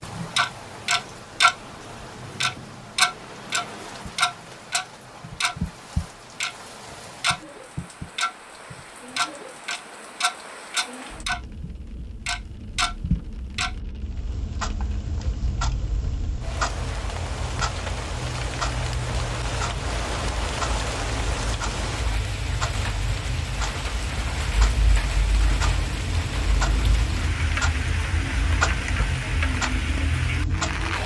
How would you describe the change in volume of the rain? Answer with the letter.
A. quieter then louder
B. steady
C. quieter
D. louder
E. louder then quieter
D.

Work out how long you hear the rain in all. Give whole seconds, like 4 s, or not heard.
31 s.